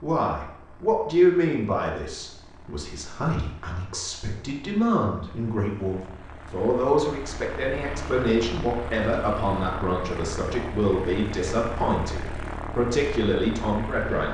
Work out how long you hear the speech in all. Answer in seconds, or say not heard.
14 s.